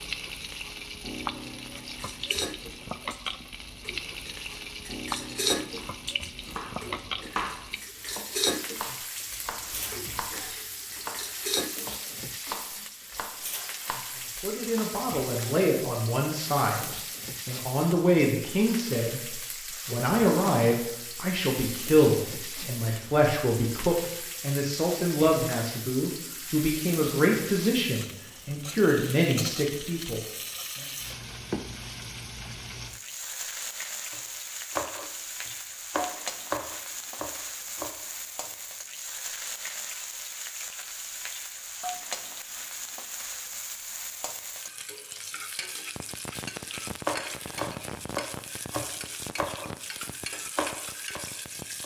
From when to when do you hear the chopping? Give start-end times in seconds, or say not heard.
5.7-14.9, 34.1-38.0, 47.0-51.8.